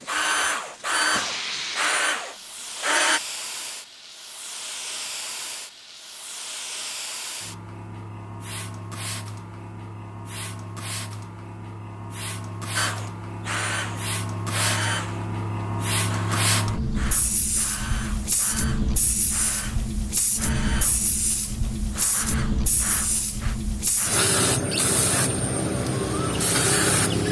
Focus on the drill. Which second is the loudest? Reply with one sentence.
The volume of the drill peaks at 1 second.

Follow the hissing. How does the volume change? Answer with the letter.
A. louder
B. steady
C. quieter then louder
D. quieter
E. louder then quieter
A.